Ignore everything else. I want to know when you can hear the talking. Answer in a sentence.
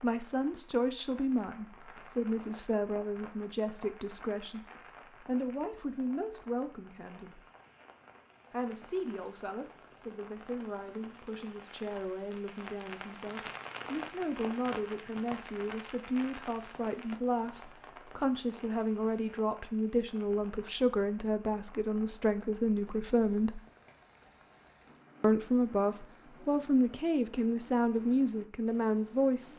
You can hear the talking from 0.0 to 7.4 s, from 8.5 to 23.6 s and from 25.2 to 29.5 s.